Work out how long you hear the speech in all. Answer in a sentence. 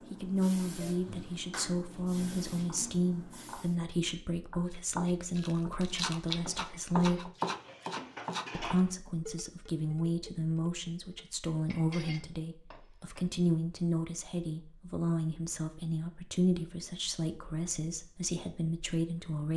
The speech can be heard for 18 seconds in total.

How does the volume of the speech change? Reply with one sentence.
The volume of the speech stays about the same.